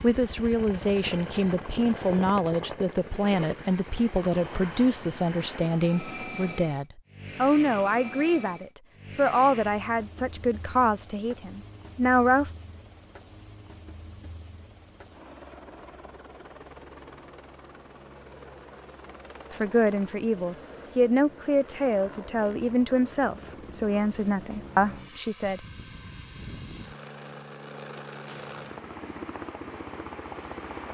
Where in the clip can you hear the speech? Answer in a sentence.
The speech can be heard from 0.0 to 12.5 s and from 19.5 to 25.6 s.